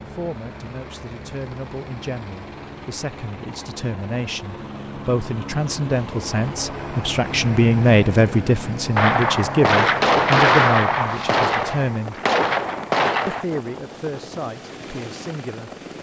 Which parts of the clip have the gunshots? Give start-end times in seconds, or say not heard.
8.9-13.4.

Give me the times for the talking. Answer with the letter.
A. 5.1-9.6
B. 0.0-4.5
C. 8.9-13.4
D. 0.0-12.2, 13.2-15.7
D.